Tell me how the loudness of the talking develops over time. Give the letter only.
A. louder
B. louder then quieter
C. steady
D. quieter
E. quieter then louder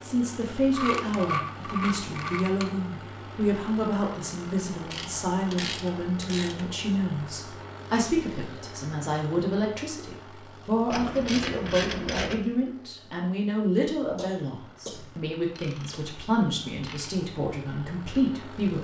C.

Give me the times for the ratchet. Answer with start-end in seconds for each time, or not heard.
0.7-2.8, 4.9-6.7, 10.9-12.4, 15.6-17.2.